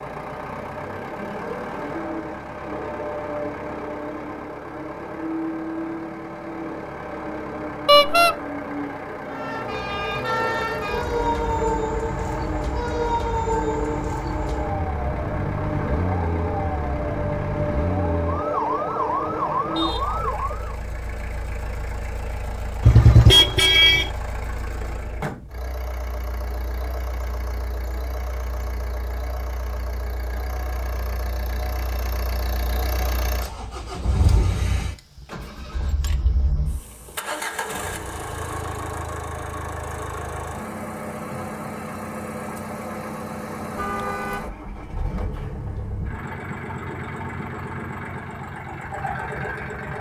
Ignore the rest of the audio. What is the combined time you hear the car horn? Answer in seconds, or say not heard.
4 s.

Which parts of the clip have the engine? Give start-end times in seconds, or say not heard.
0.0-49.9.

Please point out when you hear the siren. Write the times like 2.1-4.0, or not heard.
9.2-20.8.